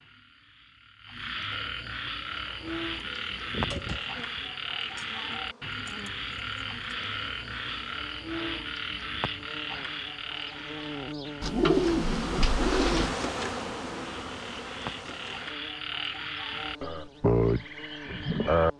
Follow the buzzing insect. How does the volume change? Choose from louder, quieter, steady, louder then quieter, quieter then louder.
louder then quieter.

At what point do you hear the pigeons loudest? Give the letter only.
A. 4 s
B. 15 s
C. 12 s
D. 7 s
C.